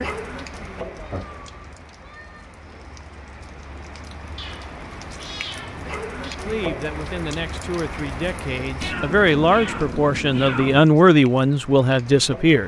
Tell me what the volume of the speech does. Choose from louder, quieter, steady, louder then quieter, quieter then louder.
louder.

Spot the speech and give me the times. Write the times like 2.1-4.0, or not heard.
6.3-12.6.